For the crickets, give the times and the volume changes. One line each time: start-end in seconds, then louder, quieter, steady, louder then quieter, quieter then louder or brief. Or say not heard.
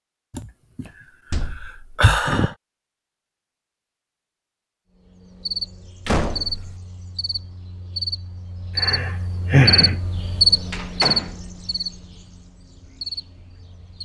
5.0-14.0 louder then quieter.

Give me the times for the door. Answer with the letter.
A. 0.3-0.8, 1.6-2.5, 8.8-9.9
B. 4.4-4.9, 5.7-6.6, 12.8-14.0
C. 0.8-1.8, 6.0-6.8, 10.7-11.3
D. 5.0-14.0
C.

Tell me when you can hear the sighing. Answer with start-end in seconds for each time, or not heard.
0.3-0.8, 1.6-2.5, 8.8-9.9.